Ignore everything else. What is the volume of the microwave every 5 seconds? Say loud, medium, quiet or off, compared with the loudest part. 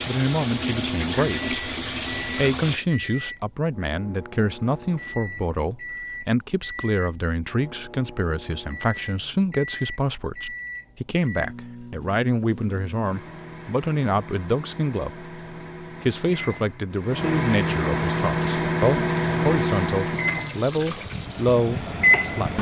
quiet, quiet, quiet, loud, loud.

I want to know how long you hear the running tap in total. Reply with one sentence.
You can hear the running tap for 7 seconds altogether.